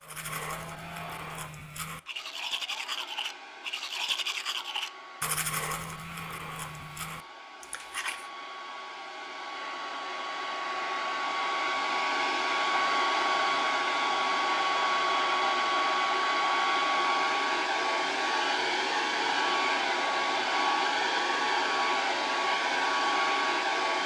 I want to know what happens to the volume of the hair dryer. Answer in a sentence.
The loudness of the hair dryer goes up.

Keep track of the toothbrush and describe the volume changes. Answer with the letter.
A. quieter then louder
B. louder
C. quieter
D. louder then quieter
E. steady
D.